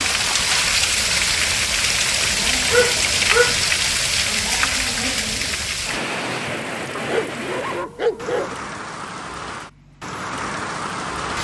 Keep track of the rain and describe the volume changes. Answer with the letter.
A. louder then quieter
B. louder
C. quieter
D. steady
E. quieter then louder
C.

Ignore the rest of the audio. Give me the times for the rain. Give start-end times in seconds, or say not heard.
0.0-11.3.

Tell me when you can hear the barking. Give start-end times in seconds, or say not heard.
2.7-3.6, 7.0-8.6.